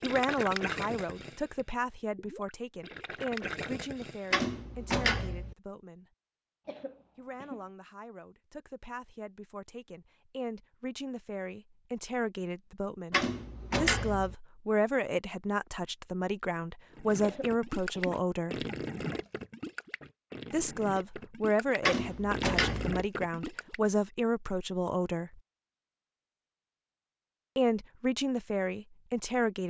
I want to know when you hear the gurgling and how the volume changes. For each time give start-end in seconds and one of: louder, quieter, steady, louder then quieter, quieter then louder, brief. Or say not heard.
0.0-4.5 quieter then louder
16.9-23.9 quieter then louder.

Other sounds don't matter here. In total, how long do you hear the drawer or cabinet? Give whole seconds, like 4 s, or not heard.
4 s.